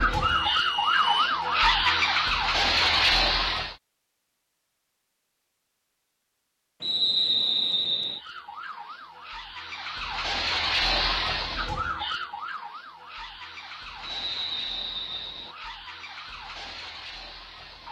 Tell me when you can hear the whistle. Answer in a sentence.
You can hear the whistle from 0.2 to 1.4 s, from 6.8 to 8.2 s and from 14.0 to 15.6 s.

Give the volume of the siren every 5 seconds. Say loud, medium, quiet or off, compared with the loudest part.
loud, quiet, medium, quiet.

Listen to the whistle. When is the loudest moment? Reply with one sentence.
The volume of the whistle peaks at 7 seconds.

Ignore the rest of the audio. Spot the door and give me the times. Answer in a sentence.
The door can't be heard in this clip.